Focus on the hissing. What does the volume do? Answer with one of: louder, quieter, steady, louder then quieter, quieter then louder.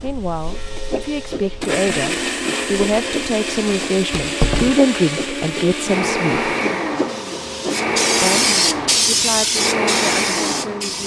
louder.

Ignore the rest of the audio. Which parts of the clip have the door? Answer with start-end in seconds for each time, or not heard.
4.1-4.8.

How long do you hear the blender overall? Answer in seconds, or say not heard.
11 s.